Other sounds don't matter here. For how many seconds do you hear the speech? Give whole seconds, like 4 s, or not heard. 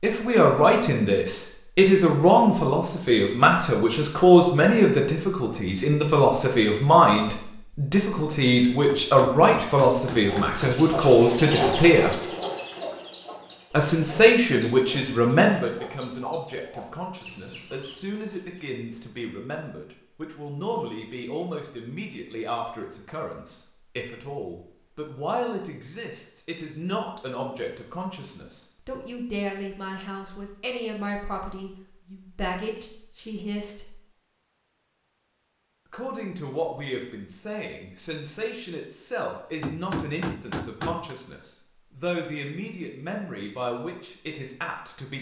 42 s.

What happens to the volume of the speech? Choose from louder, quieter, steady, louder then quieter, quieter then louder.
quieter.